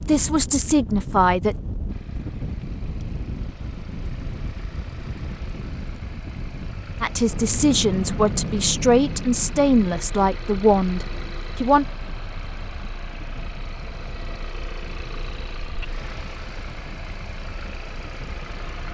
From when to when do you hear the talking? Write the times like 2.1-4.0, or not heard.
0.0-1.6, 7.0-11.8.